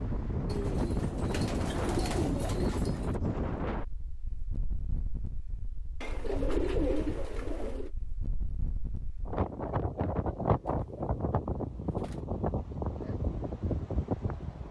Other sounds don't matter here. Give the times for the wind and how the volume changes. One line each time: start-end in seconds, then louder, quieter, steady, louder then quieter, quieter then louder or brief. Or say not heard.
0.0-14.6 quieter then louder.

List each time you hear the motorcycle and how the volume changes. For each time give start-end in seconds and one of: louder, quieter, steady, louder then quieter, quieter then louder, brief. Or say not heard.
not heard.